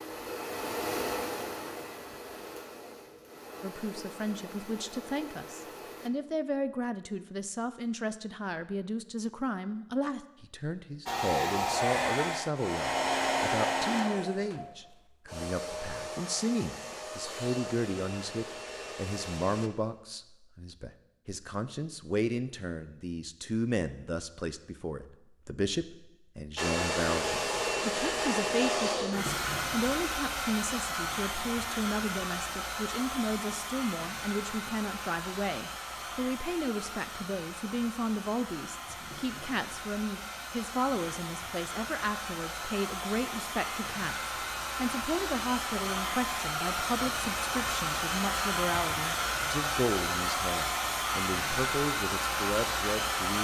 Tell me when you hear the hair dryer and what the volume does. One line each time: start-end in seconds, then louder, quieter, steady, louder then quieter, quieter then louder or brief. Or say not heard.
0.0-6.1 quieter
11.1-19.7 quieter
26.6-53.3 quieter then louder.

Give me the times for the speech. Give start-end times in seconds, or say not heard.
3.6-53.3.